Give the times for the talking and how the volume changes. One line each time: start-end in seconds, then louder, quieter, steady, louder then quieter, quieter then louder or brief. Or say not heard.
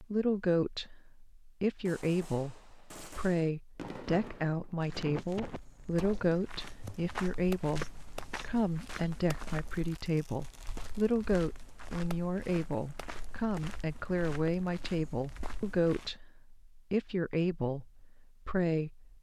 0.0-19.1 steady.